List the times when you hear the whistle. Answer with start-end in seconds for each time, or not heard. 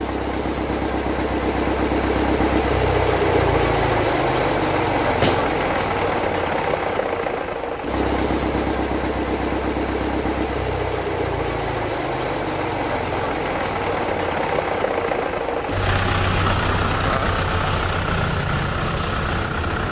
not heard.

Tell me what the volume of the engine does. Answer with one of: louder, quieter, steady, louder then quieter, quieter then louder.
steady.